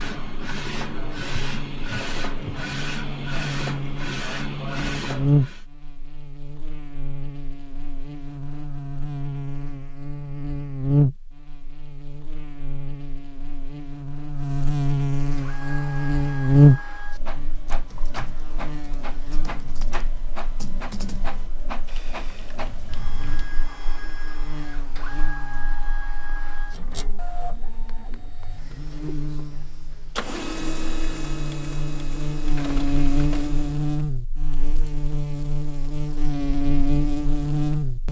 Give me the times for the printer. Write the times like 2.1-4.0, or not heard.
0.0-5.7, 15.3-33.9.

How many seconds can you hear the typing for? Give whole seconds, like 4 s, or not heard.
6 s.